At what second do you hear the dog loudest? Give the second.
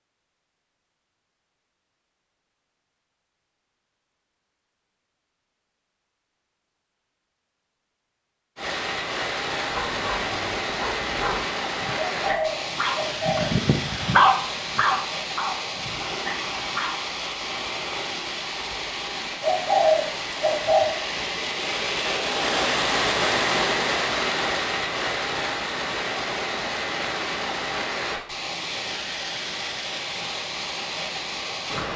14 s.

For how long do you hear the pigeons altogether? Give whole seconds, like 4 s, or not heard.
3 s.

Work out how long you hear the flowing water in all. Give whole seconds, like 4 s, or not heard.
23 s.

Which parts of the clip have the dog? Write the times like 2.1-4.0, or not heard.
9.7-16.9.